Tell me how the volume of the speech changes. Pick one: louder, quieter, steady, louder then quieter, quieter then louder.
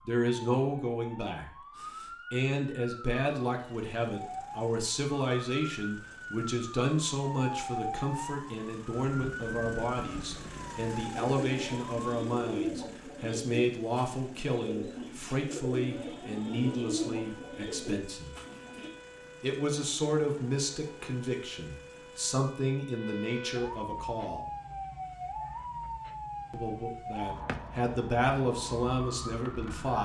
steady.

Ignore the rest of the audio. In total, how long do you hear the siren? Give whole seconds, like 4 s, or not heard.
26 s.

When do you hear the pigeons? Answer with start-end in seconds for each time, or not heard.
11.3-18.9.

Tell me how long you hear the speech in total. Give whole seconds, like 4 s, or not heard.
27 s.